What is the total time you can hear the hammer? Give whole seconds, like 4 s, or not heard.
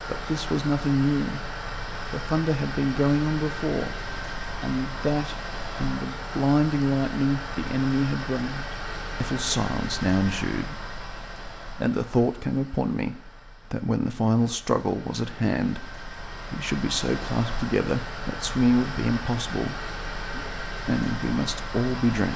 not heard.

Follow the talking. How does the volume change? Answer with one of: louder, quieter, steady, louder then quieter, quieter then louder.
steady.